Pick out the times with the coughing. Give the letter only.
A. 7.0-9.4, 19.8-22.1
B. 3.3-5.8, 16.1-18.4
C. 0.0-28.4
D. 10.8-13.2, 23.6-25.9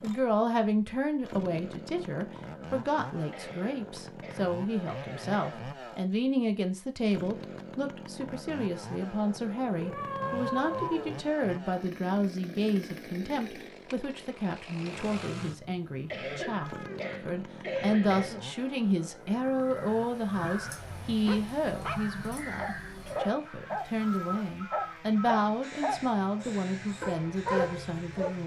B.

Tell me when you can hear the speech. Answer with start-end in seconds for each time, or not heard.
0.0-28.4.